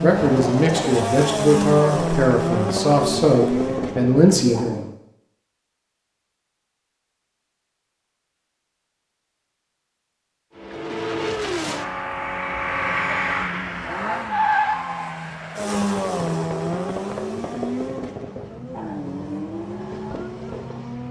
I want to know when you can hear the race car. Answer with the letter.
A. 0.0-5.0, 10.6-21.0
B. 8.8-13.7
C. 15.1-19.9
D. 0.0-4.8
A.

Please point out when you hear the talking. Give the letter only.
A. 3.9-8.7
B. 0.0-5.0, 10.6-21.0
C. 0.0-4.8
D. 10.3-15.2
C.